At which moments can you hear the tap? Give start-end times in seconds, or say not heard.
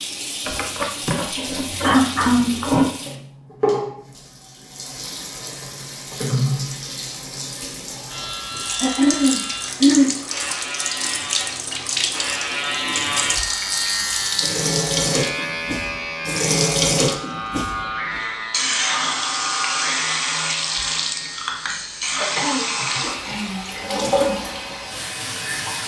0.0-25.8.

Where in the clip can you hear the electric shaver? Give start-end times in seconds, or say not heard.
8.1-25.8.